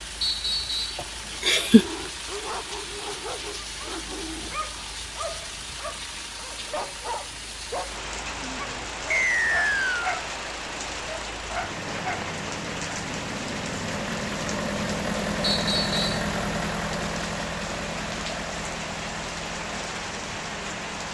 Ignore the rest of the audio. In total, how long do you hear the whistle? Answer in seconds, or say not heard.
3 s.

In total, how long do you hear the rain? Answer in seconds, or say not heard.
21 s.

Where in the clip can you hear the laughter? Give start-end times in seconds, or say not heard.
0.9-1.9.